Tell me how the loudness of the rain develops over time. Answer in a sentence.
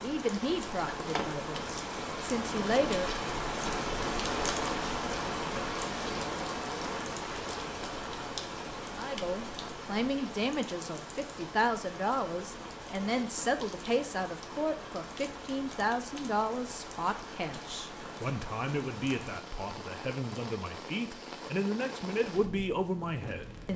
The loudness of the rain goes down.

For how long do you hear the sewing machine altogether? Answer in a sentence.
The sewing machine can't be heard in this clip.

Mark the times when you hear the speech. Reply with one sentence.
You can hear the speech from 0.0 to 3.1 s and from 8.9 to 23.7 s.